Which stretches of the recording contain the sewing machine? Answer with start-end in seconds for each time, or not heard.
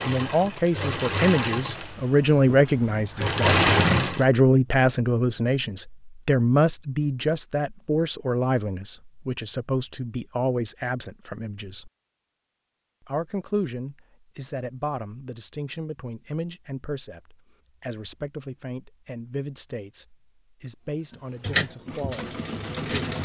0.0-4.2, 21.1-23.2.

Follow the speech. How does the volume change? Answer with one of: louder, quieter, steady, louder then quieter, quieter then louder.
quieter.